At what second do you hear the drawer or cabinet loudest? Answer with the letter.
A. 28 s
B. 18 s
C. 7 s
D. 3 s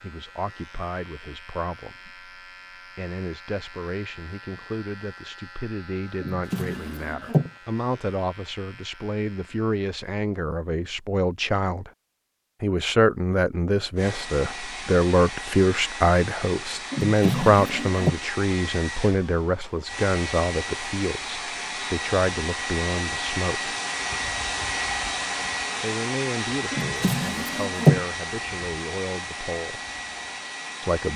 A.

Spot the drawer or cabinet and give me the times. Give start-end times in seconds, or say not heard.
6.2-7.5, 16.9-18.1, 26.7-28.0.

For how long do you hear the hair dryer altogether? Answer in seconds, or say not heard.
17 s.